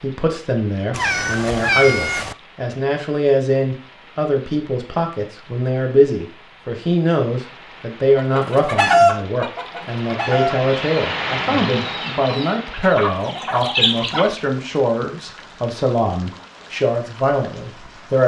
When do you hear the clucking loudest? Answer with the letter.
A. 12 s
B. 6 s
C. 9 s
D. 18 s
C.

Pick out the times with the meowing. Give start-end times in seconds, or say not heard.
0.9-2.4.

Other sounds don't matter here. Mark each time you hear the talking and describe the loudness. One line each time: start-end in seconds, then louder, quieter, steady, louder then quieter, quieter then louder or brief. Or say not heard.
0.0-18.2 steady.